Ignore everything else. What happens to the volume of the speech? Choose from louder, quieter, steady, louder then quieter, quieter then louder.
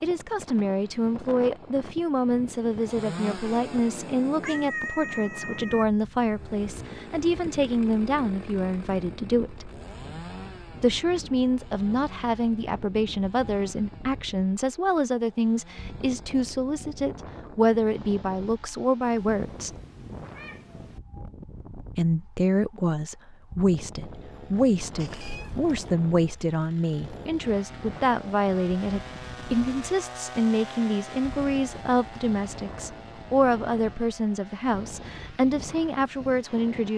steady.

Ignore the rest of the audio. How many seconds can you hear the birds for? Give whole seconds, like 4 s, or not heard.
not heard.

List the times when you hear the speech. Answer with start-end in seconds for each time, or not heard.
0.0-9.7, 10.8-19.7, 21.9-36.9.